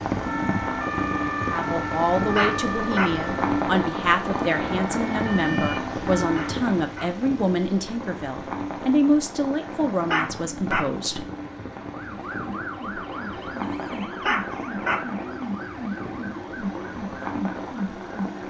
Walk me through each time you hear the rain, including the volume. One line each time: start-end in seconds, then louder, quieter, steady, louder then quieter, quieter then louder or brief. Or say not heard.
0.0-18.4 quieter.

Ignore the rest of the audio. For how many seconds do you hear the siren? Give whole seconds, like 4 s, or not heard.
13 s.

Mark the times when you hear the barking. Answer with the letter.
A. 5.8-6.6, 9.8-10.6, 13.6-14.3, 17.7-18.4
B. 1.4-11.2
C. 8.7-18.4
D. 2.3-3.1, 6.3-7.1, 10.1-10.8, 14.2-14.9
D.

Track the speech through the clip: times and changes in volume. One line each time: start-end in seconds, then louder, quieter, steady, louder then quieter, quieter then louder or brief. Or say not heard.
1.4-11.2 steady.